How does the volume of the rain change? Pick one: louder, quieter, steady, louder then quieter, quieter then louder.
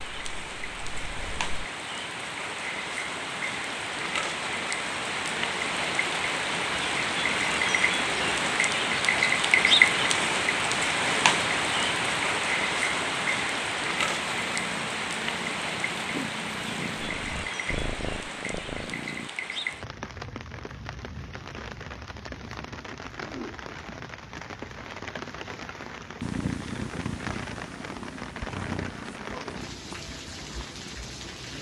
louder then quieter.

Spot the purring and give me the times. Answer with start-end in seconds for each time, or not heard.
0.0-1.4, 13.9-19.3, 26.2-31.5.